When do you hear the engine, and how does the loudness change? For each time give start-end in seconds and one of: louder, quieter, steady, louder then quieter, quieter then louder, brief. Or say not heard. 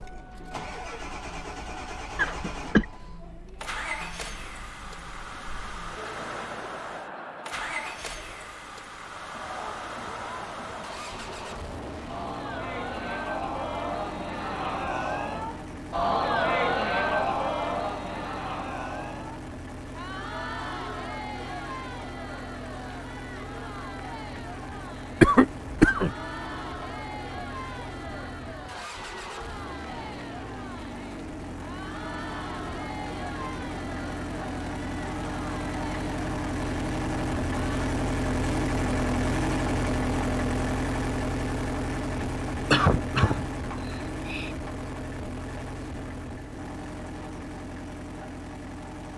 0.0-49.1 louder.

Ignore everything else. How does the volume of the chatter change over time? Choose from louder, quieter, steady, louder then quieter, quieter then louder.
louder then quieter.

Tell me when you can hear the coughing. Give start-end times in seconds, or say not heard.
2.1-2.9, 25.2-26.1, 42.7-44.5.